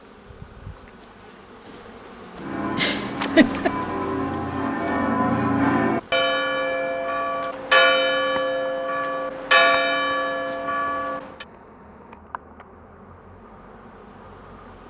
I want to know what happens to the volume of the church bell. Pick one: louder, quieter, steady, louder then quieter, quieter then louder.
louder.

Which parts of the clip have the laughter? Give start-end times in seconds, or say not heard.
2.8-3.7.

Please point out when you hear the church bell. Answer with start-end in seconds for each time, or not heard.
2.4-11.4.